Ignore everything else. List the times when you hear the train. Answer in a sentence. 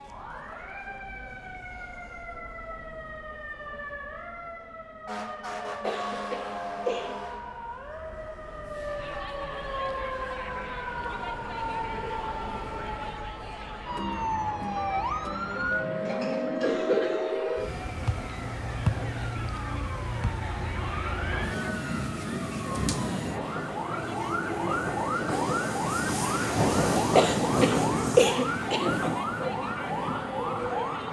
You can hear the train from 17.6 to 31.0 s.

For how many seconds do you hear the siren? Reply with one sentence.
The siren can be heard for 31 seconds in total.